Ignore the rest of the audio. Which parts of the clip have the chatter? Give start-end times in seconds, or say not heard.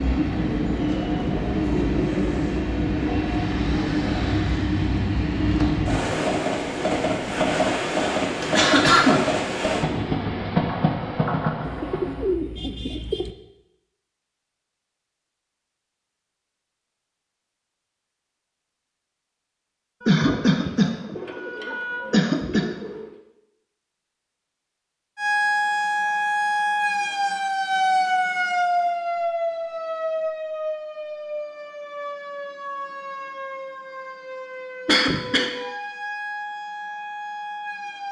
not heard.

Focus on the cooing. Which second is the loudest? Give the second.
12 s.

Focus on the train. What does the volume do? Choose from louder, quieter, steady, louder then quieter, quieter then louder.
steady.